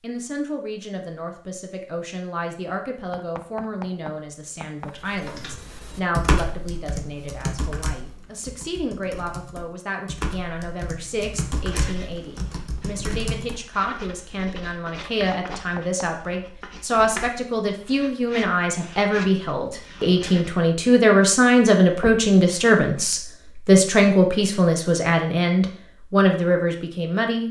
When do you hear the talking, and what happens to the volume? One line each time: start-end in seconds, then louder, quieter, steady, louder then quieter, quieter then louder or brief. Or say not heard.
0.0-27.4 louder.